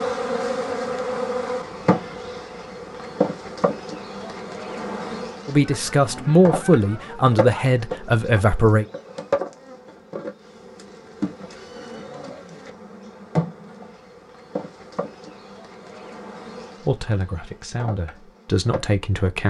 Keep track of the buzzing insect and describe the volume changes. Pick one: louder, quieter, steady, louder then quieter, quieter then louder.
quieter.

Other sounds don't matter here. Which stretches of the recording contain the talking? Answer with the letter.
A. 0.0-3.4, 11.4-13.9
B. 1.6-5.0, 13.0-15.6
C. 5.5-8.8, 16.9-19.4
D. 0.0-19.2
C.